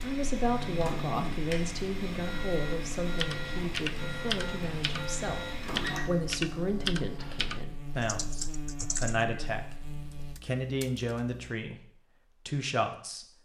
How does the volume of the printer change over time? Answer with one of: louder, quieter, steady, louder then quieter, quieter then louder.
steady.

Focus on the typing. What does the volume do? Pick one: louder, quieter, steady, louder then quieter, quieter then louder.
quieter.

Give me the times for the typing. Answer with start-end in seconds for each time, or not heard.
3.0-11.4.